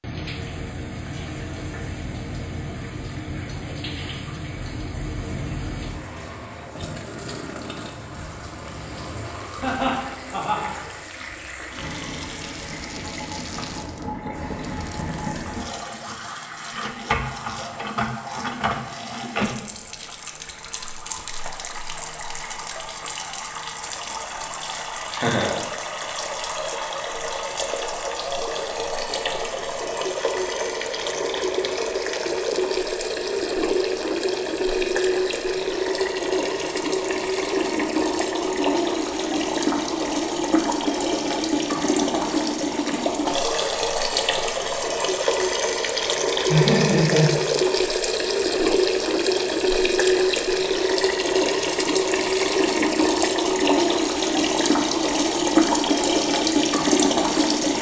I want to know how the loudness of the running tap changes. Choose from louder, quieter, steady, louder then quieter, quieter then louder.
louder.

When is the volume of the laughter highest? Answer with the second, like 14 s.
47 s.